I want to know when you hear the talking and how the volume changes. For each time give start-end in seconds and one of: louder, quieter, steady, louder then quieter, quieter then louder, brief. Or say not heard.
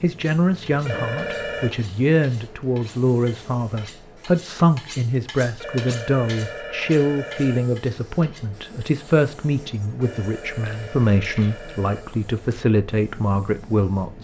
0.0-14.1 steady.